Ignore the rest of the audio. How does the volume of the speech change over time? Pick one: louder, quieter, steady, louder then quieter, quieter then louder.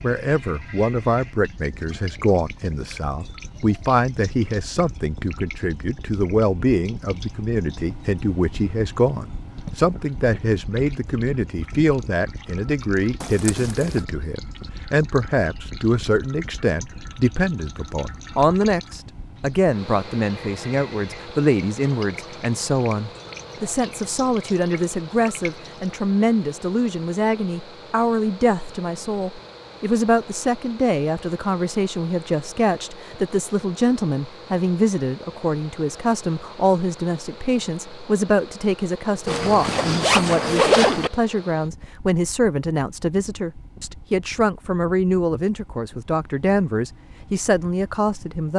steady.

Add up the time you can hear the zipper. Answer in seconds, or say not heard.
3 s.